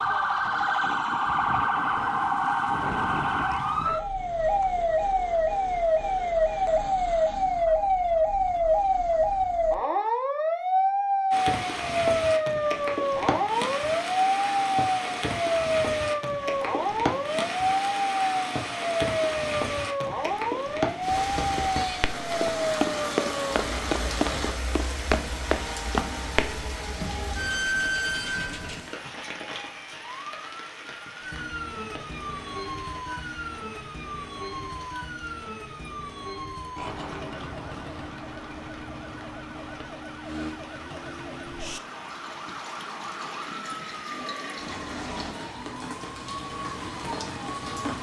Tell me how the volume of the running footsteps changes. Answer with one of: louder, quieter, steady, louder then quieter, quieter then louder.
louder.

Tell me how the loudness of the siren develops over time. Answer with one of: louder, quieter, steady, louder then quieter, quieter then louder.
quieter.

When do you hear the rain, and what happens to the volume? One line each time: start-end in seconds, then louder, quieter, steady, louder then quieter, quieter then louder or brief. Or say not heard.
11.3-47.9 quieter then louder.